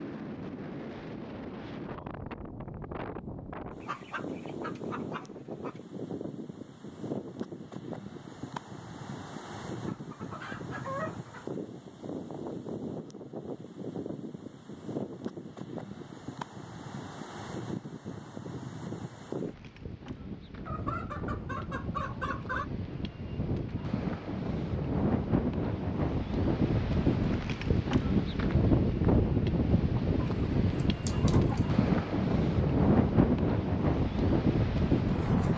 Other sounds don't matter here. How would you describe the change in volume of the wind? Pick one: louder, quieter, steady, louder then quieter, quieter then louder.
louder.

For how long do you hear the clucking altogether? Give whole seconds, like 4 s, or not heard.
7 s.